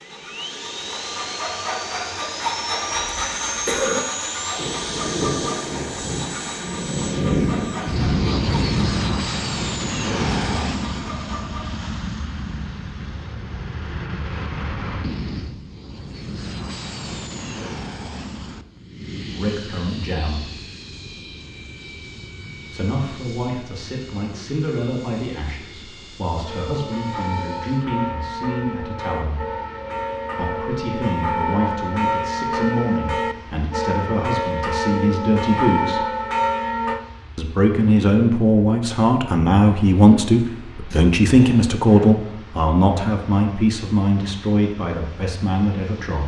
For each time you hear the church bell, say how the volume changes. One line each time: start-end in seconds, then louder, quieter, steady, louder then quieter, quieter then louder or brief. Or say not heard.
26.4-37.0 louder.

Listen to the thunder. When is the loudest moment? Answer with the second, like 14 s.
7 s.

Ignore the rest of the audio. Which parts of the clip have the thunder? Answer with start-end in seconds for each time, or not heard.
4.5-8.1.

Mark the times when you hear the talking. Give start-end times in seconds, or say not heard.
19.3-20.4, 22.7-29.4, 30.4-36.0, 37.4-46.2.